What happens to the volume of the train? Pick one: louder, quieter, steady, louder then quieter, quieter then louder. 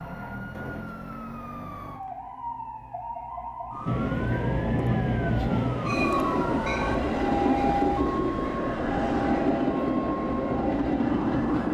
steady.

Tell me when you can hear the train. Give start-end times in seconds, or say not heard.
3.9-11.6.